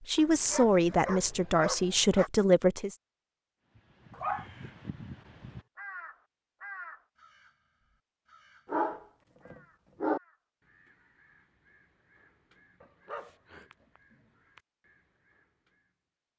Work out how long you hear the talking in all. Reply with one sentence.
You can hear the talking for 3 seconds altogether.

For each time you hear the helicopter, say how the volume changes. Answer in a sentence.
You can't hear the helicopter here.